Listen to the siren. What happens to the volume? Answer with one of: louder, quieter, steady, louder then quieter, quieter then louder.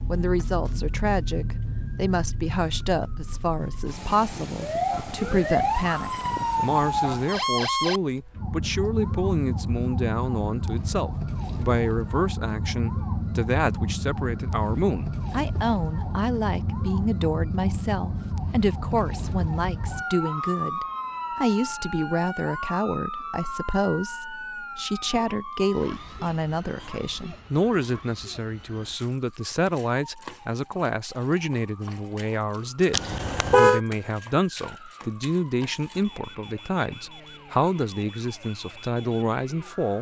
quieter.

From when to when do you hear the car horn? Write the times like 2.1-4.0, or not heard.
32.9-33.8.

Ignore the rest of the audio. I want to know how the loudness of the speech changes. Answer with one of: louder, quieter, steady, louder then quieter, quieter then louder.
steady.